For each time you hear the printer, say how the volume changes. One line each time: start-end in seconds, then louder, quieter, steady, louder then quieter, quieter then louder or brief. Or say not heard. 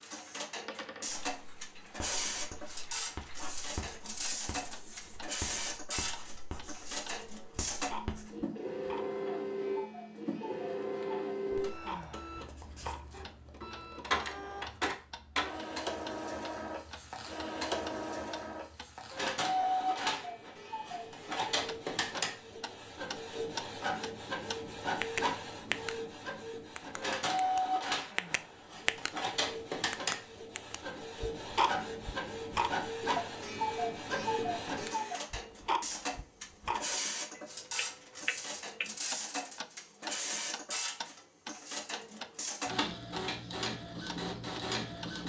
0.0-45.2 steady.